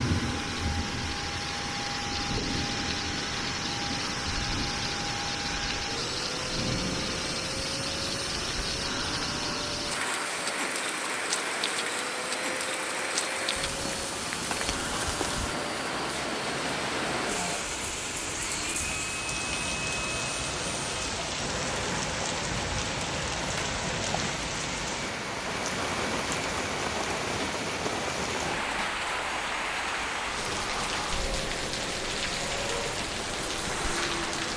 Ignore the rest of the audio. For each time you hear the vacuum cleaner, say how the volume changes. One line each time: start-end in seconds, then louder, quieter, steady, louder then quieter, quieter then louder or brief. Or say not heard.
0.0-34.5 steady.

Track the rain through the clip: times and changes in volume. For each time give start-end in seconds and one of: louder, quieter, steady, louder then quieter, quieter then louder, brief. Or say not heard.
0.0-34.5 steady.